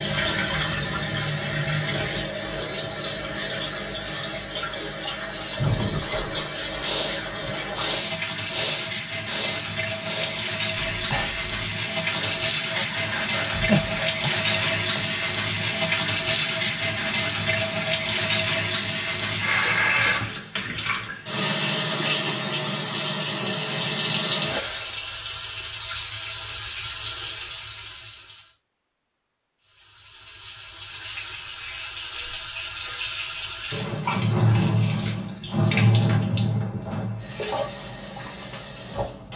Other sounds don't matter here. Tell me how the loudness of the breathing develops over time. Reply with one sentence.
The loudness of the breathing goes down, then up.